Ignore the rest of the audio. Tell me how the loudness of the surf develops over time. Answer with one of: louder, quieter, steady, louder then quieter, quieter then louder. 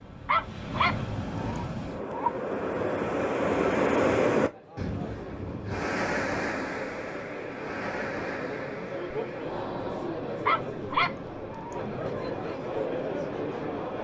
louder then quieter.